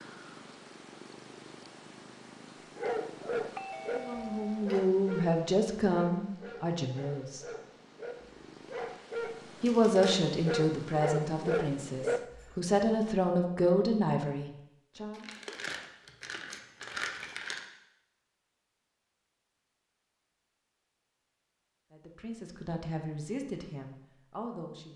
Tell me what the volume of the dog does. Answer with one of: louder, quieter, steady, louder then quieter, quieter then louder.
quieter then louder.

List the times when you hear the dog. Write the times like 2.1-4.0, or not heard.
2.8-12.6.